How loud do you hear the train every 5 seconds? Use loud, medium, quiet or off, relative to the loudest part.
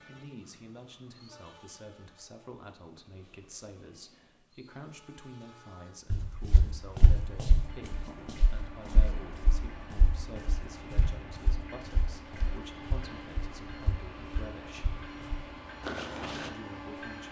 quiet, medium, loud, loud.